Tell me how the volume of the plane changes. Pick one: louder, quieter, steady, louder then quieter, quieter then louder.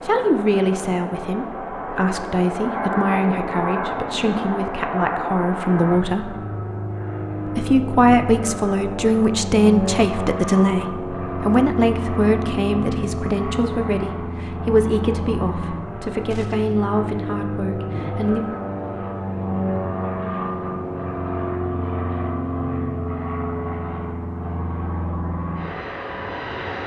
steady.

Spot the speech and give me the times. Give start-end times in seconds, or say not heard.
0.0-6.3, 7.5-18.4.